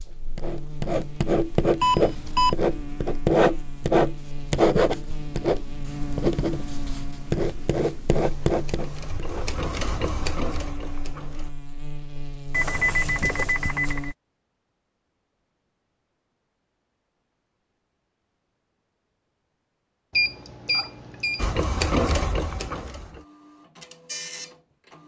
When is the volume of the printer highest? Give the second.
22 s.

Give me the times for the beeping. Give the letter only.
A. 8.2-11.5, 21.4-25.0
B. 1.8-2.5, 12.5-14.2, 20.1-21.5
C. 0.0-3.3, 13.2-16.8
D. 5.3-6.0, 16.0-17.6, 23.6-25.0
B.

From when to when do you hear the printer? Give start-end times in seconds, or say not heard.
8.2-11.5, 21.4-25.0.